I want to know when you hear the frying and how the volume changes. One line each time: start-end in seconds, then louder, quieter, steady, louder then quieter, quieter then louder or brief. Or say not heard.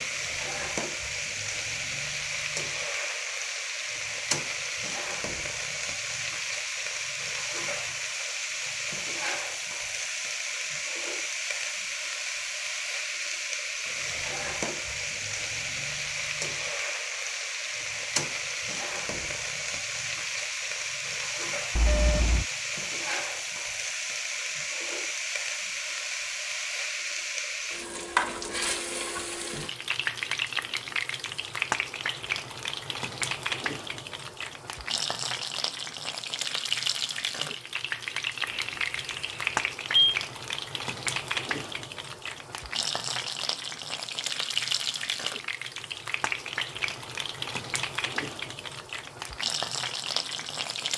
0.0-50.9 steady.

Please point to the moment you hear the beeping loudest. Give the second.
22 s.